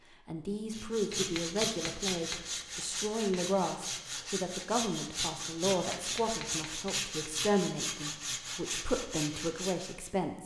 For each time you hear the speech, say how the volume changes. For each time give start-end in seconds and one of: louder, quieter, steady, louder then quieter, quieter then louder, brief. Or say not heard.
0.2-10.4 steady.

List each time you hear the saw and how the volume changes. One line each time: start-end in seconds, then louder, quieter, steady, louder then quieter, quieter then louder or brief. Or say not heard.
0.7-10.1 steady.